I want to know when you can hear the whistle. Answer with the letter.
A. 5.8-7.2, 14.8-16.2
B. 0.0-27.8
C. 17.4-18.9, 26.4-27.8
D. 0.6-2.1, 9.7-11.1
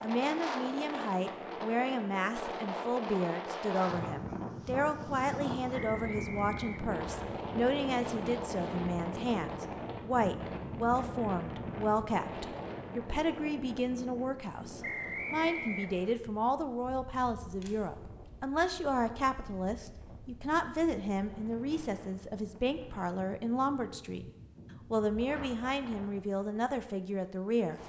A.